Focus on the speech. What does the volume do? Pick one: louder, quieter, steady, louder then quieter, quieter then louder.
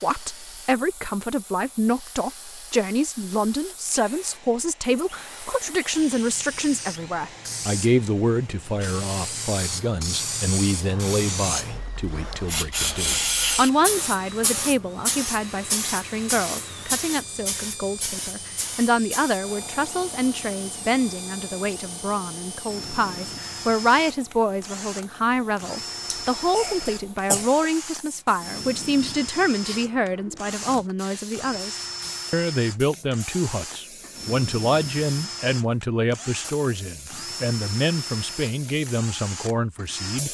steady.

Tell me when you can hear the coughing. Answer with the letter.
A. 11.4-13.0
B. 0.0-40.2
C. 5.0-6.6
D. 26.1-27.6
D.